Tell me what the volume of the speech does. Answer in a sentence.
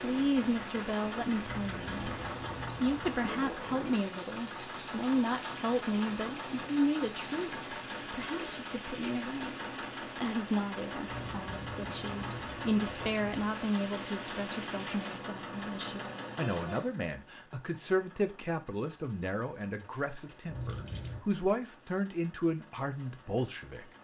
The loudness of the speech stays about the same.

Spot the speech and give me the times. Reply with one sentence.
The speech can be heard from 0.0 to 23.9 s.